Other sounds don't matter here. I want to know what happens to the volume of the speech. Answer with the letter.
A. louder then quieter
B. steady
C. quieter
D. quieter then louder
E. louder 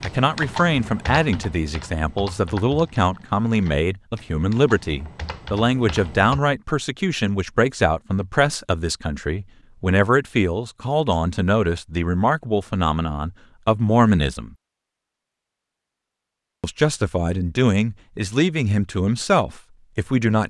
B.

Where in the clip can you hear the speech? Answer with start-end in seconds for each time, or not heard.
0.0-14.6, 16.6-20.4.